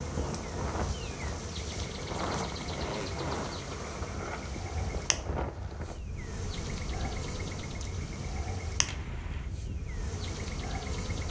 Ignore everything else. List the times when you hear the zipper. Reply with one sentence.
You can hear the zipper from 2.8 to 3.5 s and from 8.8 to 9.5 s.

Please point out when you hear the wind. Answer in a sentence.
You can hear the wind from 0.0 to 11.2 s.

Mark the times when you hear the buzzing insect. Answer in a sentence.
The buzzing insect can be heard from 0.0 to 11.2 s.